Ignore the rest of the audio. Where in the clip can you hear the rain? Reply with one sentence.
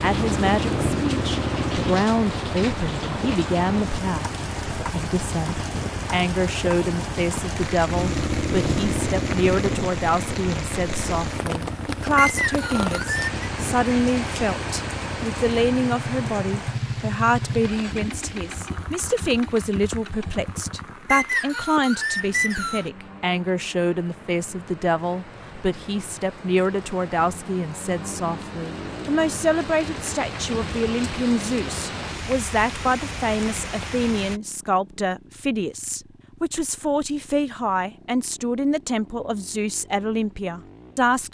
The rain can be heard from 0.0 to 34.4 s.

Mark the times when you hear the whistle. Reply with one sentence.
The whistle can be heard from 12.2 to 13.5 s and from 21.1 to 22.9 s.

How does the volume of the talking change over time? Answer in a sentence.
The volume of the talking stays about the same.